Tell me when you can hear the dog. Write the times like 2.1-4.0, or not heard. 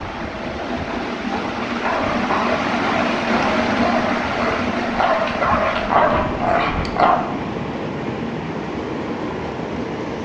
1.8-7.2.